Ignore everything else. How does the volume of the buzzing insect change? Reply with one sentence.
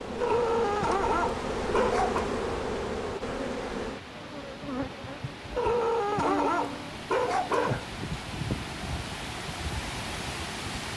The loudness of the buzzing insect goes down.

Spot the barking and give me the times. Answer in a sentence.
The barking can be heard from 0.2 to 2.2 s and from 5.5 to 8.0 s.